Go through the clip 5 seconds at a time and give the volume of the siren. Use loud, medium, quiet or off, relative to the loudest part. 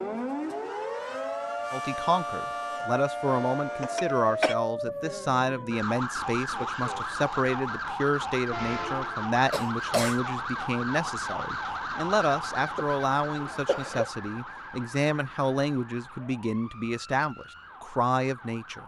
loud, loud, loud, quiet.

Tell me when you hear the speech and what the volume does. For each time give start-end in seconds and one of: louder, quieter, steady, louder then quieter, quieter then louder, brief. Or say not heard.
1.7-18.8 steady.